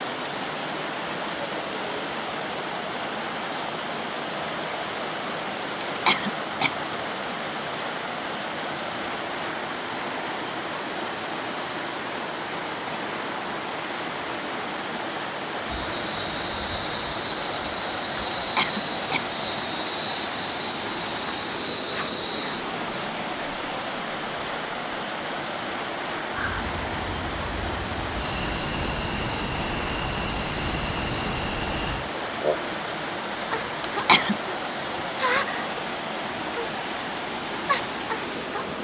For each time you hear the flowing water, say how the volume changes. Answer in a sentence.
You can hear the flowing water from 0.0 to 38.7 s, at a steady volume.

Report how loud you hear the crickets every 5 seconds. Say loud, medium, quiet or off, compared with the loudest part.
off, off, off, loud, loud, loud, loud, loud.